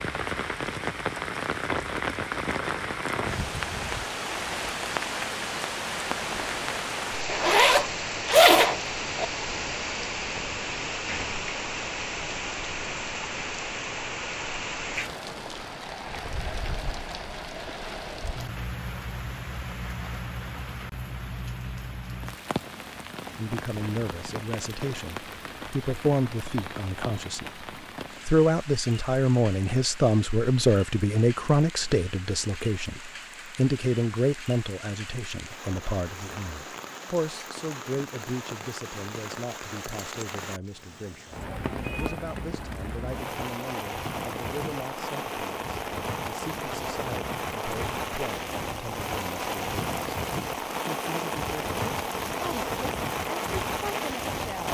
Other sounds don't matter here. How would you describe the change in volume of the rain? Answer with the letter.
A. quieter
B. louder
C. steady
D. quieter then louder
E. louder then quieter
D.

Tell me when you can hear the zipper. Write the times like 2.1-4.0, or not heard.
7.2-9.2.